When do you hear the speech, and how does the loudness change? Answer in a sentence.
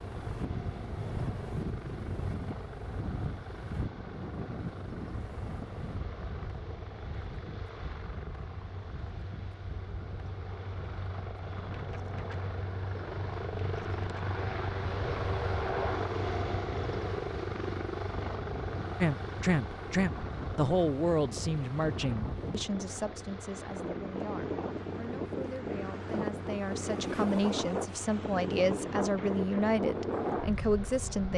The speech can be heard from 19.0 to 31.3 s, getting quieter then louder.